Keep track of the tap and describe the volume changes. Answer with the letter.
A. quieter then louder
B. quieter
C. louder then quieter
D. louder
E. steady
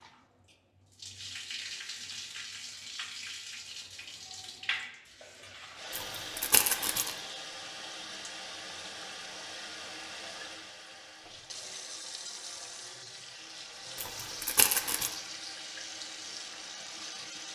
E.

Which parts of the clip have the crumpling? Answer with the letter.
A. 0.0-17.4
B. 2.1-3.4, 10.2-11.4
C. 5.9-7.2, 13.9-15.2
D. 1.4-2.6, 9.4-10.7
C.